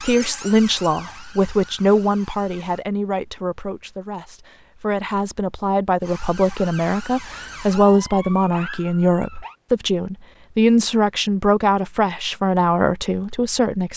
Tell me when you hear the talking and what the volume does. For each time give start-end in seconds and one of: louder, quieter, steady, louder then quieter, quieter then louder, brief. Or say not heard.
0.0-13.9 quieter then louder.